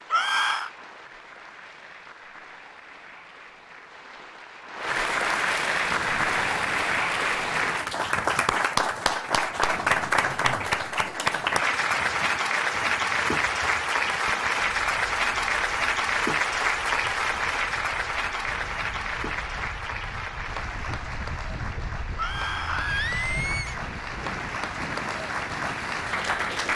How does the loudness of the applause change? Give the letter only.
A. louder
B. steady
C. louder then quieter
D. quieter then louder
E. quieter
C.